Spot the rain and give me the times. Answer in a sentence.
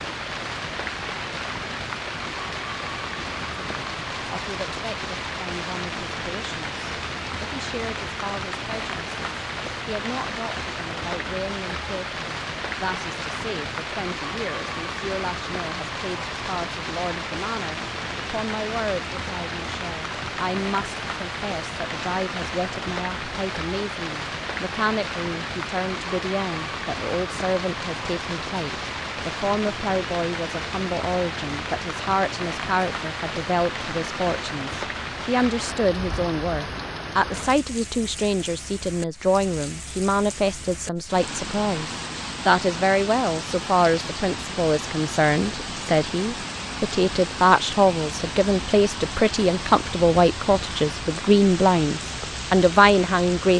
You can hear the rain from 0.0 to 53.5 s.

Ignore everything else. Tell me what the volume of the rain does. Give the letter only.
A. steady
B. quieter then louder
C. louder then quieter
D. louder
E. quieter
A.